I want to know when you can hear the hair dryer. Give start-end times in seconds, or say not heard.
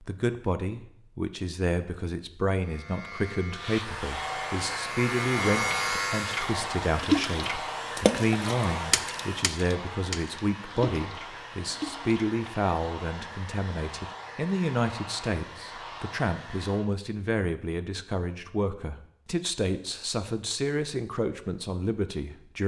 3.5-16.9.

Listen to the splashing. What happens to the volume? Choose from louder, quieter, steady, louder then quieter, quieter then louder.
quieter.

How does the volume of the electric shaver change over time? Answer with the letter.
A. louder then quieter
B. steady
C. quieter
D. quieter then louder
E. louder
E.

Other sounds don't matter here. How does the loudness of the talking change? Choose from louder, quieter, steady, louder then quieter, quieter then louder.
steady.